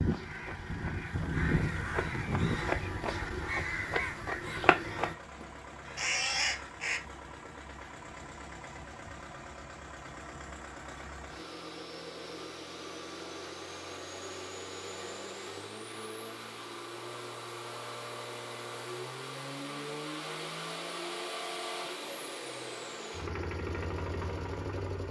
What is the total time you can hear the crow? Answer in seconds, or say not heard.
7 s.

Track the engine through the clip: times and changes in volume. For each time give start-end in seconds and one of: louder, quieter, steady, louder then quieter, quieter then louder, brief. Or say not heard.
0.0-25.0 louder.